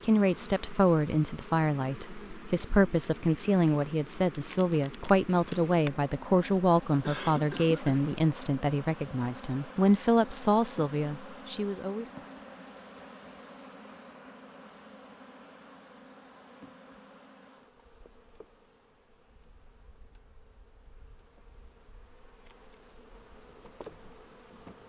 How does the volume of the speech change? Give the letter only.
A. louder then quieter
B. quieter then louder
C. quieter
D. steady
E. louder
D.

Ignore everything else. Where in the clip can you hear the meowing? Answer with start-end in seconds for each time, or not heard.
not heard.